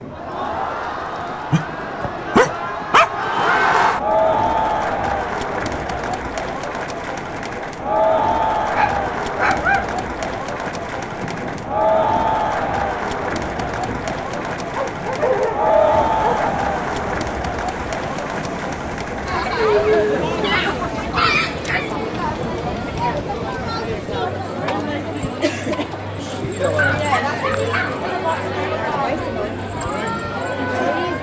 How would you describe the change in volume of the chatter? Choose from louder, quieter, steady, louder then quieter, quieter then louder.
steady.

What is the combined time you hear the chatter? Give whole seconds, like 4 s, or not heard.
31 s.